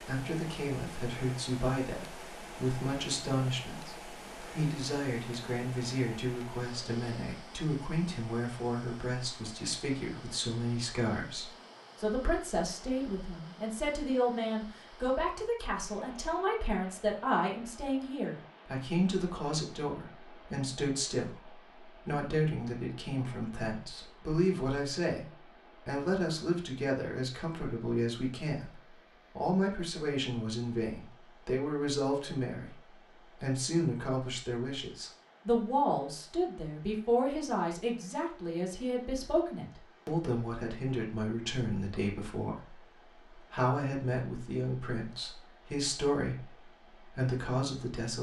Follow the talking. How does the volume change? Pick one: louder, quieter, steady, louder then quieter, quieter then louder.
steady.